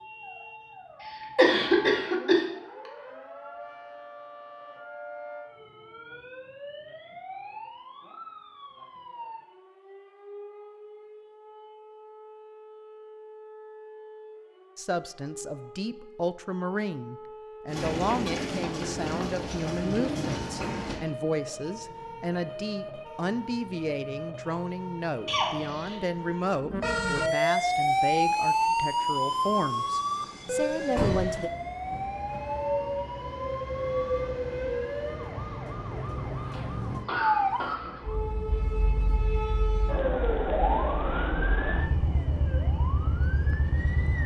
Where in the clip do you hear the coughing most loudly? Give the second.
2 s.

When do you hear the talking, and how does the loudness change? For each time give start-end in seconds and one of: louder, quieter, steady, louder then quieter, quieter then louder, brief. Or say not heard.
14.8-31.5 steady.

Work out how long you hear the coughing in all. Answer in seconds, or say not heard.
4 s.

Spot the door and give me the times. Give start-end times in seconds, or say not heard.
30.9-32.4.